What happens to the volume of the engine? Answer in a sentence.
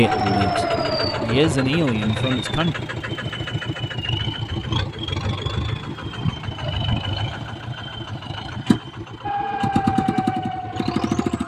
The loudness of the engine stays about the same.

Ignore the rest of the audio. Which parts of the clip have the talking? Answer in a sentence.
The talking can be heard from 0.0 to 2.8 s.